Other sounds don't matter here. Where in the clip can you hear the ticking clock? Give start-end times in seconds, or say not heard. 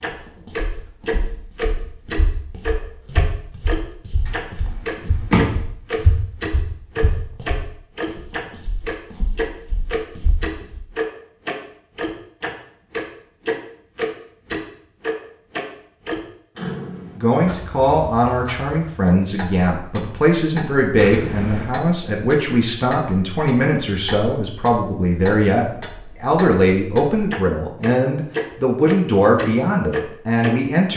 0.0-30.9.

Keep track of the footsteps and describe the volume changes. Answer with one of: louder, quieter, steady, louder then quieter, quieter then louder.
louder then quieter.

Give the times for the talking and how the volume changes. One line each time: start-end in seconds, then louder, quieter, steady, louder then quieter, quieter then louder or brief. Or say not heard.
17.1-30.9 steady.